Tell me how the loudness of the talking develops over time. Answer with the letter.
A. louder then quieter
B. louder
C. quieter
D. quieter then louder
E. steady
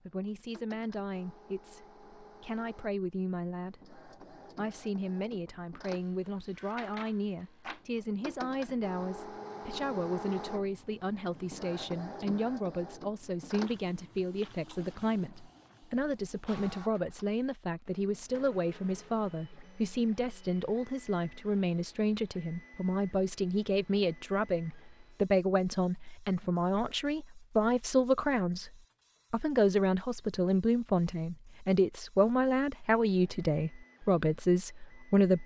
B.